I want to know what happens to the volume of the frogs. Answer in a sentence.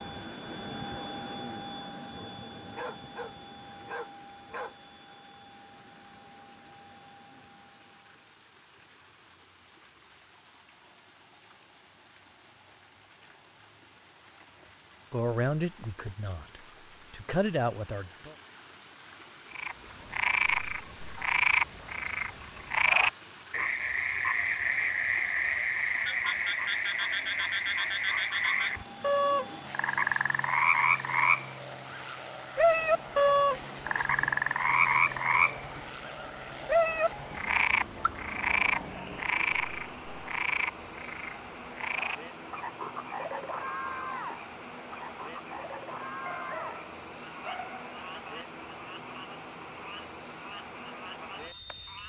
The volume of the frogs goes down.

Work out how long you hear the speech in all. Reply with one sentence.
You can hear the speech for 3 seconds altogether.